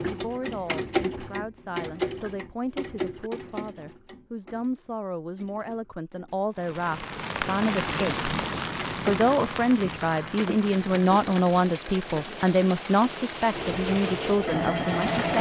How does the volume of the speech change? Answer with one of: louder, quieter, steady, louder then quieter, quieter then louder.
louder.